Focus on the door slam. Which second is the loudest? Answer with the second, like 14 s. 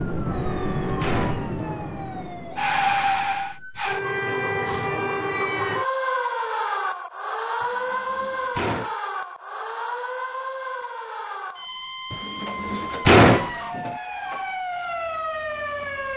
13 s.